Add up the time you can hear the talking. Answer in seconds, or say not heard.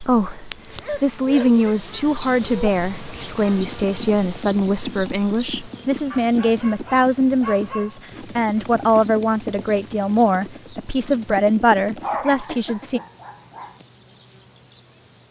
13 s.